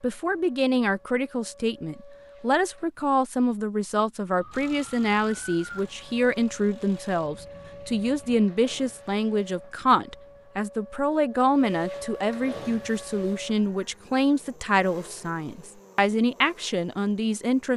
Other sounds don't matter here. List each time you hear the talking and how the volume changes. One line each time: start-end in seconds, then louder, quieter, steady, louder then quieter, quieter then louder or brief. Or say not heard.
0.0-17.7 steady.